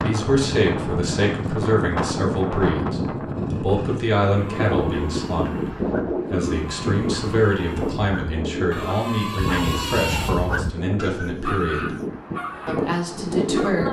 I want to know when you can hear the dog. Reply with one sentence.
The dog can be heard from 4.2 to 13.8 s.